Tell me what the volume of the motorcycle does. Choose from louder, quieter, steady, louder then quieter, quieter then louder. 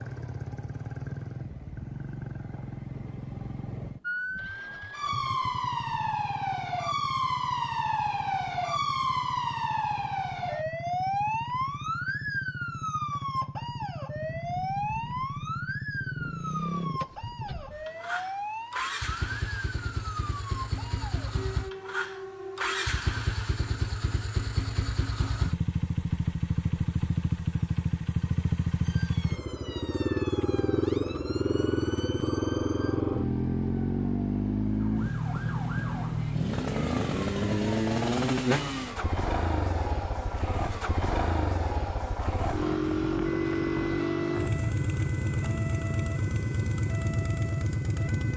louder.